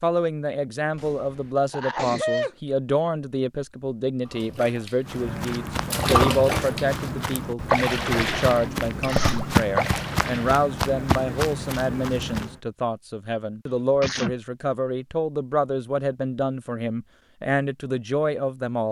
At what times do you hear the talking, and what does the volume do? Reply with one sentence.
The talking can be heard from 0.0 to 18.8 s, at a steady volume.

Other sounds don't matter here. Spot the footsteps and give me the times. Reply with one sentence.
You can hear the footsteps from 5.0 to 12.6 s.